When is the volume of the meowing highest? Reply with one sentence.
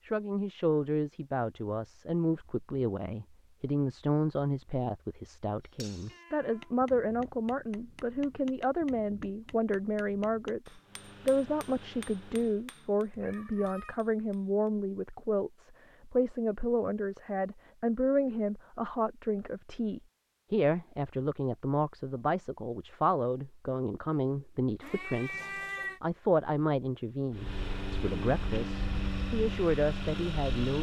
The volume of the meowing peaks at 26 seconds.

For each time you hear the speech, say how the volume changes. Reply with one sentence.
You can hear the speech from 0.1 to 30.7 s, at a steady volume.